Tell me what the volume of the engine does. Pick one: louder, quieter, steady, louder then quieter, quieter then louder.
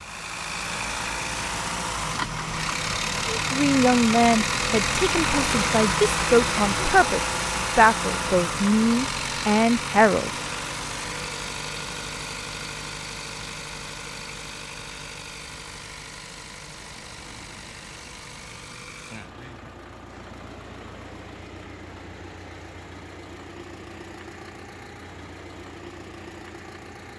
quieter.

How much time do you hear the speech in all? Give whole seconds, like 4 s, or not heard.
7 s.